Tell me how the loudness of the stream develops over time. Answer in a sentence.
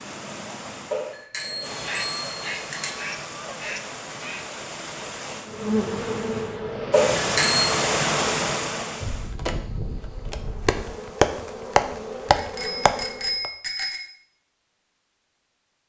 The loudness of the stream goes up.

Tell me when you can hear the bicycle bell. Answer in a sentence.
You can hear the bicycle bell from 0.9 to 2.9 s, from 6.9 to 7.8 s and from 12.3 to 14.0 s.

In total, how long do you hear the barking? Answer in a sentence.
You can't hear the barking here.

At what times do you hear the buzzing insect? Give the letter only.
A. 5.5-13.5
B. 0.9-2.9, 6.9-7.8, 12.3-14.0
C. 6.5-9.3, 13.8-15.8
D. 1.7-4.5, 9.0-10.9
A.